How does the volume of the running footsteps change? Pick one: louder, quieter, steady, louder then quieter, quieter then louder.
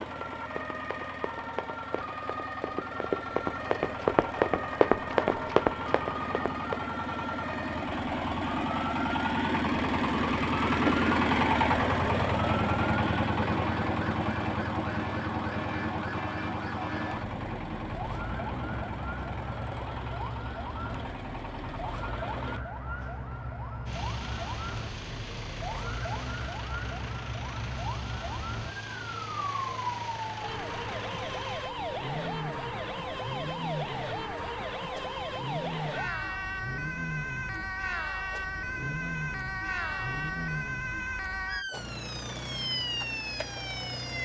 louder.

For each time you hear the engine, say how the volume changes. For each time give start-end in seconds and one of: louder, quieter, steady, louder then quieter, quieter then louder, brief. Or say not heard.
0.0-44.2 louder then quieter.